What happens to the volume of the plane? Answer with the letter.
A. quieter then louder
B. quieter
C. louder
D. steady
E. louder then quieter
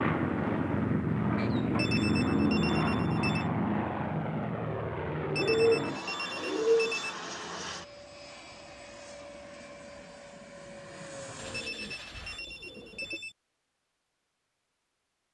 B.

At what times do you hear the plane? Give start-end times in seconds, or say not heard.
0.0-12.4.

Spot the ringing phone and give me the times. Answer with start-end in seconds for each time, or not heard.
1.8-3.5, 5.3-7.2, 11.5-13.3.